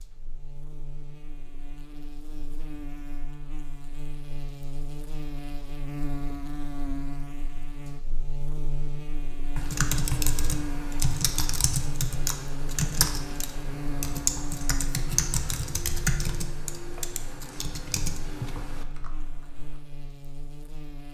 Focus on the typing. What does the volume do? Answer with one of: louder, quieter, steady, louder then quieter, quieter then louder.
quieter.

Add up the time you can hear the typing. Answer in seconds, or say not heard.
10 s.